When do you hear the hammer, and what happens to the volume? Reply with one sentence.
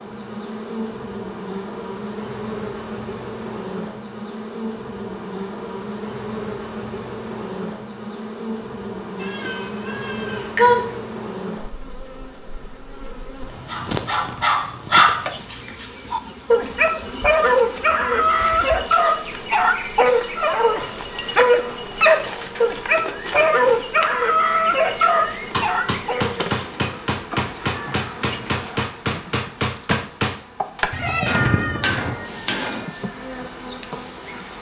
The hammer can be heard from 25.4 to 32.9 s, at a steady volume.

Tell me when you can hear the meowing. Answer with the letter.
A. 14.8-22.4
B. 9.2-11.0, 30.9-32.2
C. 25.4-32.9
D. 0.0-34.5
B.